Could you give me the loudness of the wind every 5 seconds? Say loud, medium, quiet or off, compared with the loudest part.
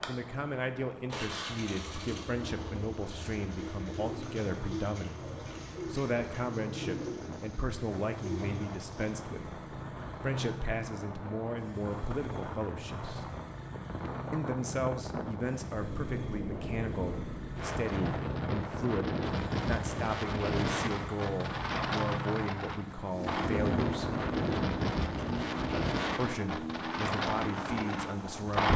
quiet, quiet, medium, loud, loud, loud.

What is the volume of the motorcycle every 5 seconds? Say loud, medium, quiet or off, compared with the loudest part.
medium, medium, medium, medium, loud, loud.